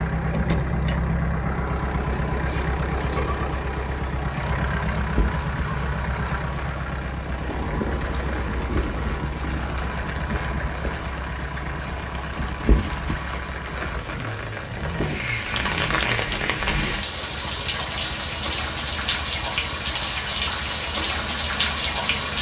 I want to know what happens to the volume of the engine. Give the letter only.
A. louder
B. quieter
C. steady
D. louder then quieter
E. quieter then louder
B.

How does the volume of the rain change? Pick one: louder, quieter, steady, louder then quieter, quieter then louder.
louder.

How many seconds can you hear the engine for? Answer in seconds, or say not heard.
22 s.